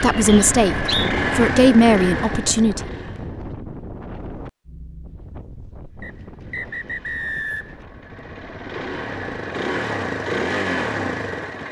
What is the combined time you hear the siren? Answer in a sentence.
You can't hear the siren here.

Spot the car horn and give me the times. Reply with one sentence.
You can't hear the car horn here.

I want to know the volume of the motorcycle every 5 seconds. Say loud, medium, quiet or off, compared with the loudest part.
loud, medium, loud.